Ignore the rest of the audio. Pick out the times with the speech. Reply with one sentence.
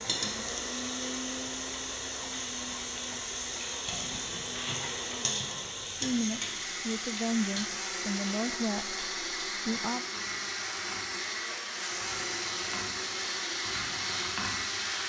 You can hear the speech from 6.0 to 10.1 s.